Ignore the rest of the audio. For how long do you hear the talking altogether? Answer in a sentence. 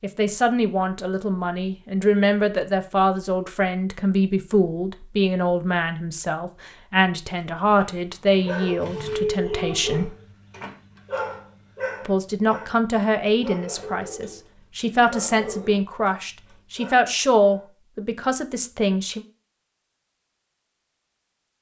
The talking can be heard for 17 seconds in total.